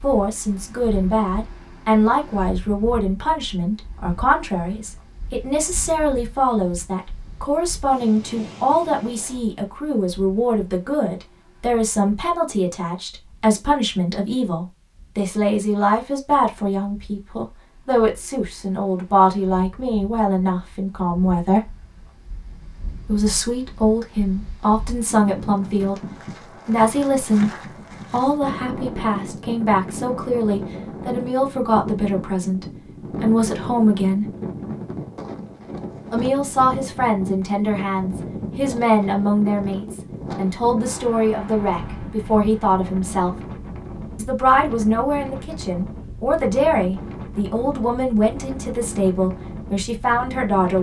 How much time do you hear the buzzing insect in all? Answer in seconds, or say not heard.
not heard.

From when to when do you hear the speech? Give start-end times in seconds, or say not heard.
0.0-21.7, 23.1-34.2, 36.1-43.4, 44.1-50.7.